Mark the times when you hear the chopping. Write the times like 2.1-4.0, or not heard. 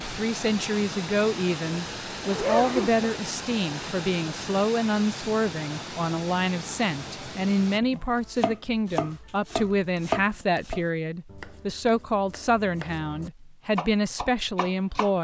7.8-15.1.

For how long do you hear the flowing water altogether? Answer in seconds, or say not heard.
8 s.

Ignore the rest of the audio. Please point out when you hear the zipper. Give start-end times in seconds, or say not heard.
2.2-3.0.